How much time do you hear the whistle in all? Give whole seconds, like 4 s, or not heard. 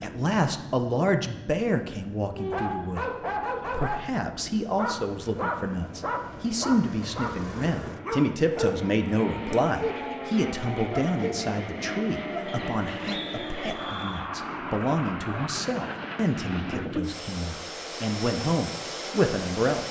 2 s.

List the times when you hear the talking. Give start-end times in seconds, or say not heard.
0.0-19.8.